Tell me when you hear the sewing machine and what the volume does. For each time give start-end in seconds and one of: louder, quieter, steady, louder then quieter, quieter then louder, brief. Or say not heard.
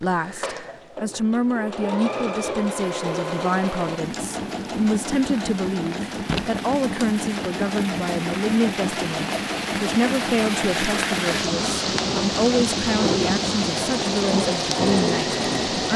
0.0-15.9 steady.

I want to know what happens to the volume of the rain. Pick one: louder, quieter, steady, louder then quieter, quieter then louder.
louder.